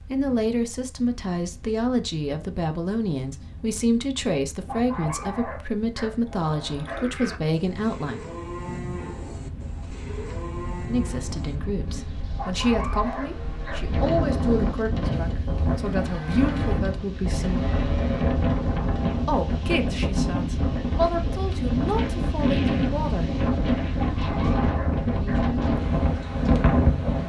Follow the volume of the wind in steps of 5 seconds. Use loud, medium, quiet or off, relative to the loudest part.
quiet, quiet, medium, loud, loud, loud.